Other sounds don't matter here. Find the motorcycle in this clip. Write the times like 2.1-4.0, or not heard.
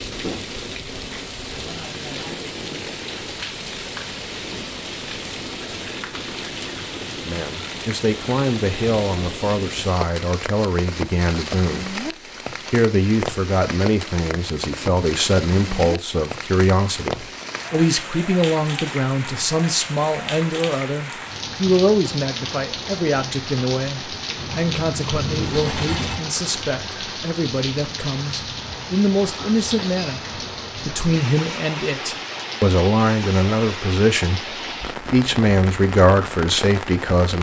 24.4-26.1.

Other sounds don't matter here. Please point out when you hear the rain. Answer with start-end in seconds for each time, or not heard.
0.0-37.3.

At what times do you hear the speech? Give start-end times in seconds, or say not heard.
7.2-12.0, 12.7-37.3.